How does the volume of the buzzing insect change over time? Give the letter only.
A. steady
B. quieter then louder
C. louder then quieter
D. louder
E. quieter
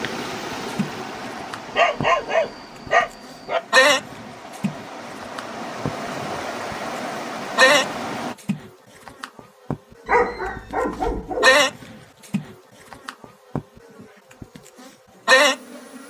D.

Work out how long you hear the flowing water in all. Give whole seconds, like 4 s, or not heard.
8 s.